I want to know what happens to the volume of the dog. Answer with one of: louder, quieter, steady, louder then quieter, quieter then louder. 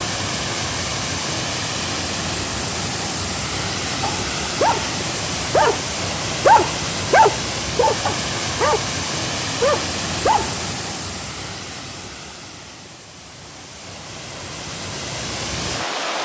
louder then quieter.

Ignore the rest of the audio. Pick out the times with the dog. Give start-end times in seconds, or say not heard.
4.0-10.6.